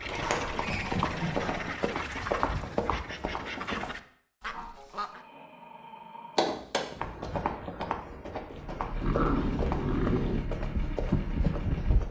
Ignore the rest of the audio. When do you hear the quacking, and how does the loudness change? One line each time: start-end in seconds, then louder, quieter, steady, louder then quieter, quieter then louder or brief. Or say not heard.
0.0-5.2 steady.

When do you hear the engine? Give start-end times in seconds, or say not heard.
8.5-12.0.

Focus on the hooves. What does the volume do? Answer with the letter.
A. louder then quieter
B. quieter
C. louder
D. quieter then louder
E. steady
E.